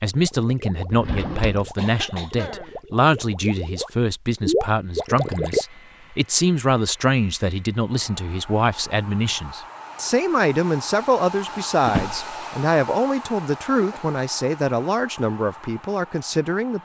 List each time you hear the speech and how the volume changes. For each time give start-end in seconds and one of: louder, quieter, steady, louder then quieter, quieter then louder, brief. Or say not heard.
0.0-16.7 steady.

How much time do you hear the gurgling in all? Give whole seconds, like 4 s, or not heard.
6 s.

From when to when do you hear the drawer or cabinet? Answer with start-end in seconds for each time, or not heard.
0.9-1.8, 11.8-12.3.